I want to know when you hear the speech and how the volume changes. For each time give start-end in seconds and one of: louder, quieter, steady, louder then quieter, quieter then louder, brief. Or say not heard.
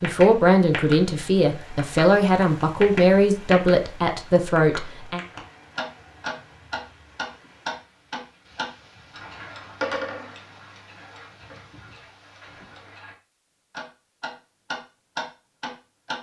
0.0-5.2 steady.